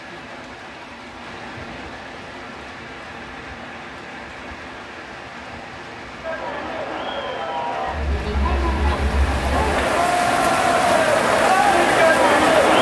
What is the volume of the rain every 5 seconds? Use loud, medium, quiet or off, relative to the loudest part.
quiet, medium, loud.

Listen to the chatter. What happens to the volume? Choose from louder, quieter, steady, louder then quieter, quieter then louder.
louder.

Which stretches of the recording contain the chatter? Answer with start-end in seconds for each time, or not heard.
6.2-12.7.